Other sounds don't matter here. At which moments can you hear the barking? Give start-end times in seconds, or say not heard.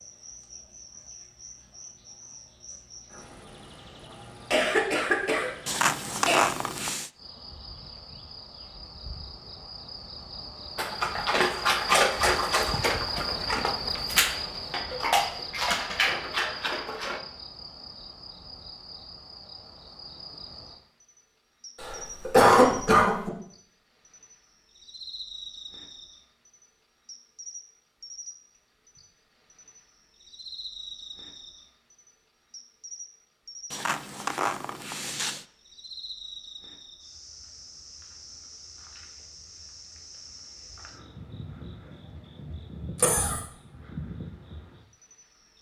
10.8-17.2.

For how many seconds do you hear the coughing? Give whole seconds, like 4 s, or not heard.
4 s.